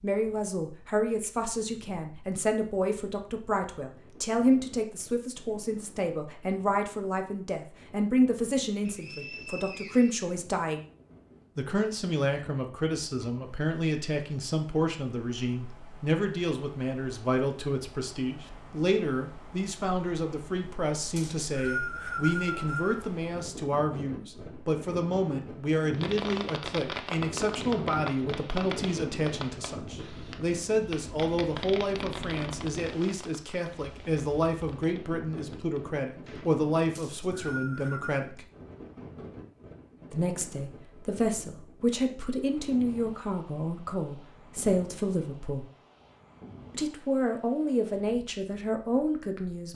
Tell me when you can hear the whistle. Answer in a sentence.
You can hear the whistle from 8.8 to 10.2 s, from 21.1 to 23.1 s and from 37.0 to 38.2 s.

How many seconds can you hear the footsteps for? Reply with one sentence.
The footsteps can't be heard in this clip.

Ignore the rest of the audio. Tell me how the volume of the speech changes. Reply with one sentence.
The loudness of the speech stays about the same.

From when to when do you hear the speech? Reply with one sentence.
You can hear the speech from 0.0 to 10.8 s, from 11.6 to 38.5 s, from 40.1 to 45.6 s and from 46.7 to 49.7 s.